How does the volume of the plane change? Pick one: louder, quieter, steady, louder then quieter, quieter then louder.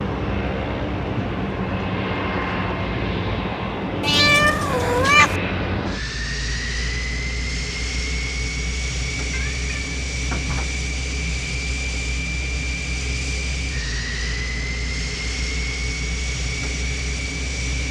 steady.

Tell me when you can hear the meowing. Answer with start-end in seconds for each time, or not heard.
4.0-5.3, 9.3-10.7.